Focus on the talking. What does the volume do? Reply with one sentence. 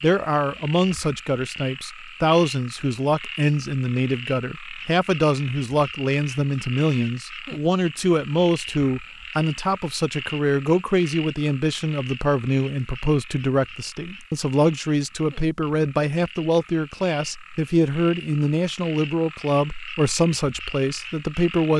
The loudness of the talking stays about the same.